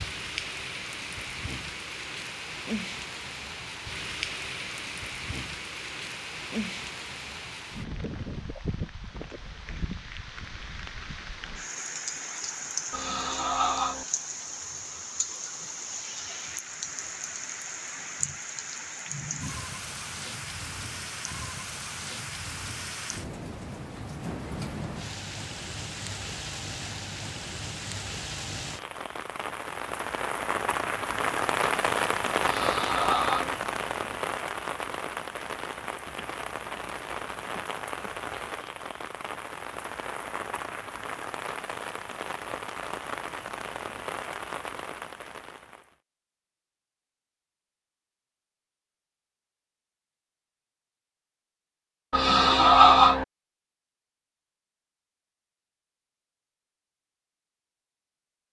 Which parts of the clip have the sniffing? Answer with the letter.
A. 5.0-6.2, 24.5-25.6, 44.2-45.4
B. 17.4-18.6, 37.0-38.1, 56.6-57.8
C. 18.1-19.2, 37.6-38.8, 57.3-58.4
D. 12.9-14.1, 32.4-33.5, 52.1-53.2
D.